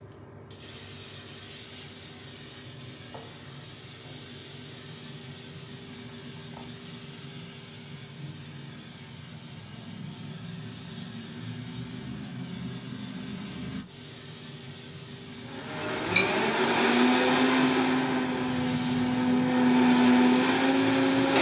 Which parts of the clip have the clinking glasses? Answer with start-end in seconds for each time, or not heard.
15.8-16.4.